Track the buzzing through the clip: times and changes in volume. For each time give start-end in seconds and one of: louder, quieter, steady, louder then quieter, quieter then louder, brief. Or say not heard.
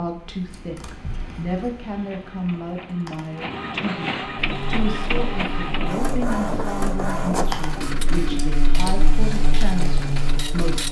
4.3-10.8 louder.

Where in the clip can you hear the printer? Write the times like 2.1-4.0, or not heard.
1.9-10.8.